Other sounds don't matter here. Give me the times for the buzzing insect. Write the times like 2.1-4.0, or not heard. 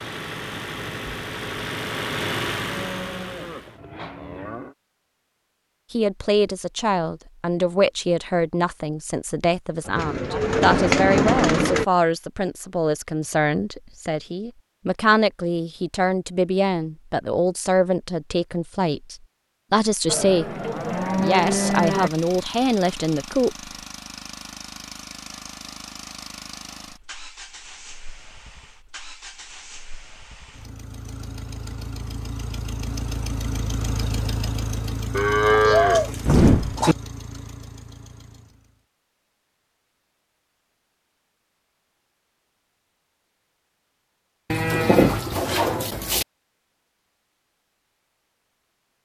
not heard.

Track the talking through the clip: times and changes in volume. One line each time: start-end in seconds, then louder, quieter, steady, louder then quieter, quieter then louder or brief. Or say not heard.
5.9-23.7 steady.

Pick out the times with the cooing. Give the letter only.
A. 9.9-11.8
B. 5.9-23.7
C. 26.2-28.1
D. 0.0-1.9
A.